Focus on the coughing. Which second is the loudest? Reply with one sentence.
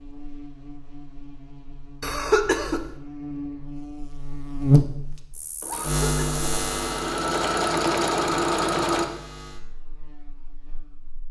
The loudest moment of the coughing is at 2 seconds.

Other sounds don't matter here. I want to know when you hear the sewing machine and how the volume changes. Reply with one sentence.
The sewing machine can be heard from 4.8 to 9.1 s, getting louder.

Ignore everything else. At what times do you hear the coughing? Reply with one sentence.
The coughing can be heard from 2.0 to 2.9 s and from 5.7 to 6.5 s.